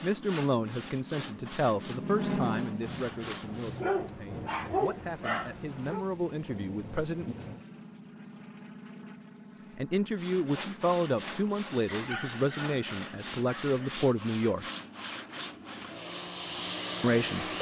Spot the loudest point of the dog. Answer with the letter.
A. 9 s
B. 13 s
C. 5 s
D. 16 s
C.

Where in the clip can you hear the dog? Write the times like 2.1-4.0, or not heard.
3.8-6.0, 11.9-13.9.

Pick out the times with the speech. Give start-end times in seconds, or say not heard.
0.0-7.3, 9.8-14.7, 17.0-17.4.